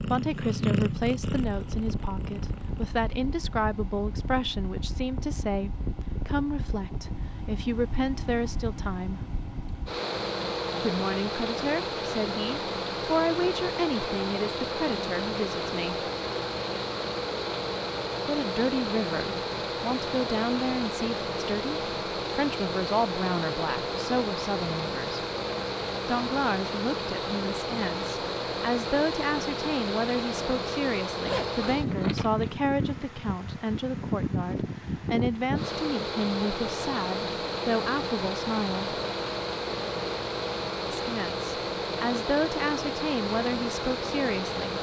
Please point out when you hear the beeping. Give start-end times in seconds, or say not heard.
not heard.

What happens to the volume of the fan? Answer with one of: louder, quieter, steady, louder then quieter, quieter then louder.
louder.